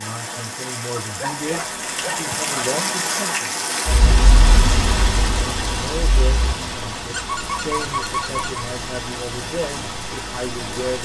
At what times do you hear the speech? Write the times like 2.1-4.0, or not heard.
0.0-3.5, 5.8-11.0.